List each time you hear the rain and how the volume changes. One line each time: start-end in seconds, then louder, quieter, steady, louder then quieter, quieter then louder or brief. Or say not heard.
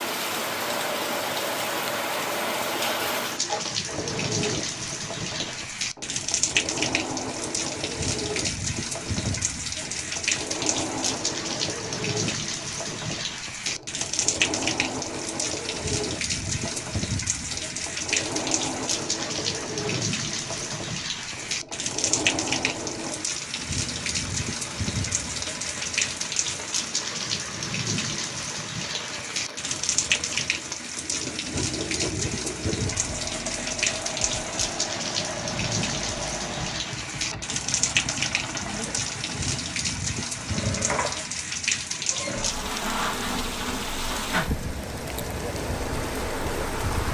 0.0-47.0 steady.